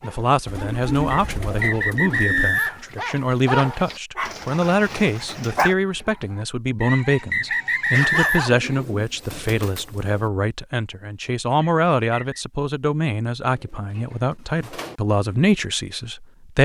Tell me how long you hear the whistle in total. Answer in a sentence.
The whistle can be heard for 4 seconds in total.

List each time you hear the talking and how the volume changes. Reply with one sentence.
The talking can be heard from 0.0 to 16.6 s, at a steady volume.